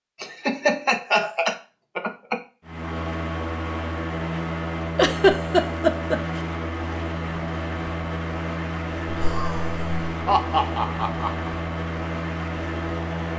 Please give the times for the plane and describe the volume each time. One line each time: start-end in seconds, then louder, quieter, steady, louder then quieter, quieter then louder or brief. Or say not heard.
2.6-13.3 steady.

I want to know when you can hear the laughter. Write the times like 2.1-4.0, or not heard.
0.2-2.4, 5.0-6.4, 9.1-11.5.